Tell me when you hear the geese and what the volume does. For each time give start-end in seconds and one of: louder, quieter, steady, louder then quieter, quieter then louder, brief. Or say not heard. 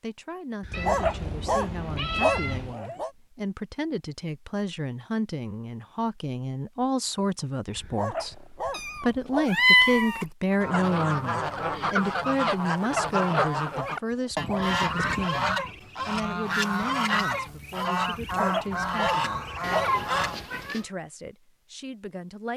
10.5-20.5 steady.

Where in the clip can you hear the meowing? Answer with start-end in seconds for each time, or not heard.
0.7-2.8, 8.7-10.2, 19.6-20.9.